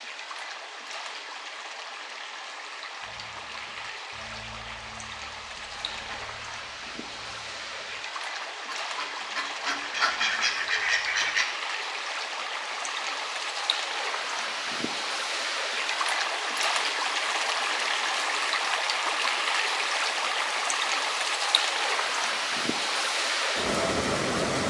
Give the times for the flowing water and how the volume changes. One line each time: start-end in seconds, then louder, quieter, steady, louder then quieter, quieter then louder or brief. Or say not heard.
0.0-24.6 louder.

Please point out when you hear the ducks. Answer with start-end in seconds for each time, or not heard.
3.0-11.4.